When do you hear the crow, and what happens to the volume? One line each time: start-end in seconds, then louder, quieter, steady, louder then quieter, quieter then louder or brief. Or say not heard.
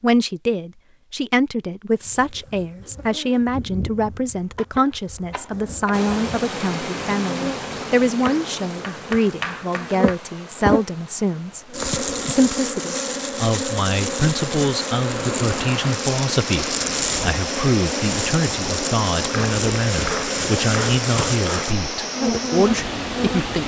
not heard.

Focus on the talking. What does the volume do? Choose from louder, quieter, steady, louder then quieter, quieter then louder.
steady.